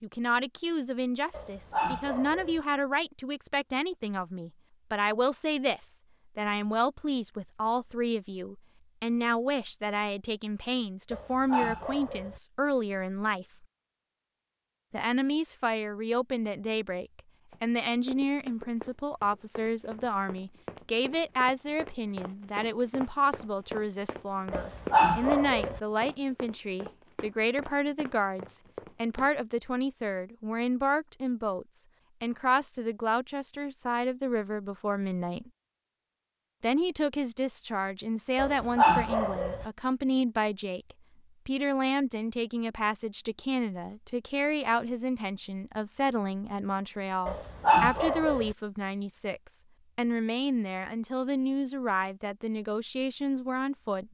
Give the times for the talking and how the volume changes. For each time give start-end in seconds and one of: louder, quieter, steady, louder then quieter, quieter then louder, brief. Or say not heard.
0.0-13.7 steady
14.9-35.5 steady
36.6-54.0 steady.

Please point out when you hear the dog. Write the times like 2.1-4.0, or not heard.
1.3-2.6, 11.1-12.4, 24.5-25.8, 38.4-39.6, 47.2-48.5.